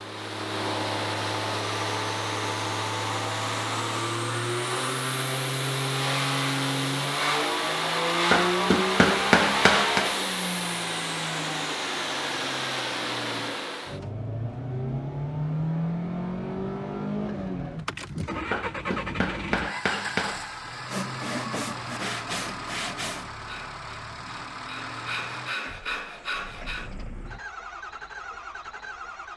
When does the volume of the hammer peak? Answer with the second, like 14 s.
9 s.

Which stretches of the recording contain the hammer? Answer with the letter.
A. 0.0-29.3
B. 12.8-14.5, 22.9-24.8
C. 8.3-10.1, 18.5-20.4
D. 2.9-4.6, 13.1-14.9
C.